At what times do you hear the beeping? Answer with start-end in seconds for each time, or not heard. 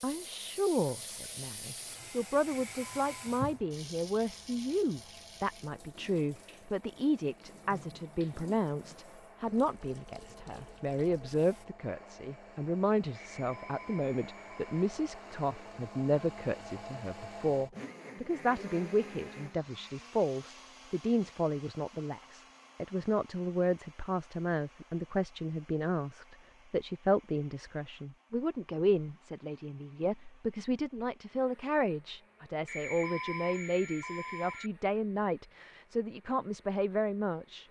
2.5-3.1, 13.1-14.8, 32.6-34.7.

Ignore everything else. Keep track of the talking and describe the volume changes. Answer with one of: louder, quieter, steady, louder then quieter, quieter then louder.
steady.